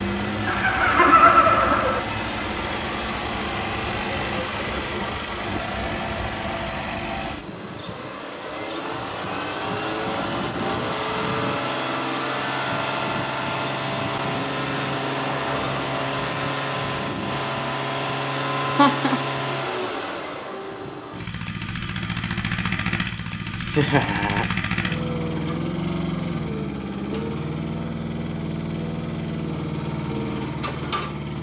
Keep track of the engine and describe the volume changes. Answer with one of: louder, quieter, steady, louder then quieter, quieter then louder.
steady.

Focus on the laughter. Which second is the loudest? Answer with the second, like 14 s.
1 s.